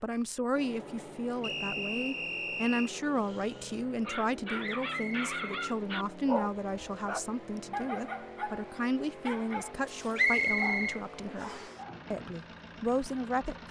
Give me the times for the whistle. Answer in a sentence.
The whistle can be heard from 1.4 to 2.9 s, from 4.9 to 5.5 s and from 10.2 to 11.7 s.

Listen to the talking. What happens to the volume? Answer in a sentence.
The loudness of the talking stays about the same.